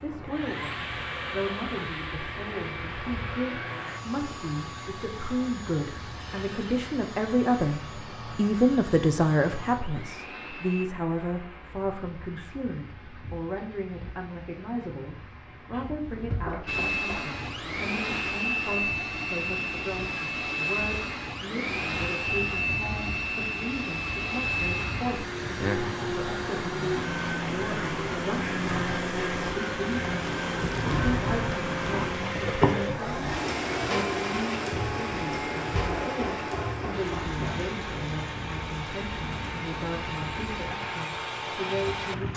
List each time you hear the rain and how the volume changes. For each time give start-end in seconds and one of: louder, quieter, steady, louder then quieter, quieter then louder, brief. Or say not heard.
0.0-42.3 louder.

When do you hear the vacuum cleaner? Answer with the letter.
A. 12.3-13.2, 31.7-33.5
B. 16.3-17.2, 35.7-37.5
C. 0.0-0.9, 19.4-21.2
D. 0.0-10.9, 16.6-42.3
D.